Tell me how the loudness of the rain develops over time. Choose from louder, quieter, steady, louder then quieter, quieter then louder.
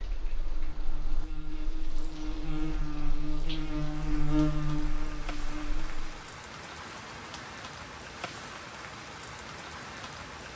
louder.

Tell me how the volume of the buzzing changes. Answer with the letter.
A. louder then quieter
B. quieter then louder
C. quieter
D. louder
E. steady
A.